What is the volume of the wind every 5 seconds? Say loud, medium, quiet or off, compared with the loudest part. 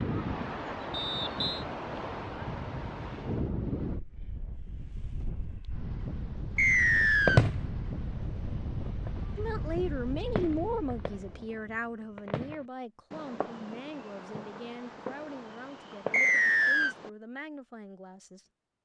loud, loud, medium, off.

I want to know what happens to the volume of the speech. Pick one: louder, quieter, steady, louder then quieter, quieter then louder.
quieter.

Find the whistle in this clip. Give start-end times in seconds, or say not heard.
0.9-1.6, 6.5-7.4, 16.1-16.9.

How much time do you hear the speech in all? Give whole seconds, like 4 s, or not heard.
9 s.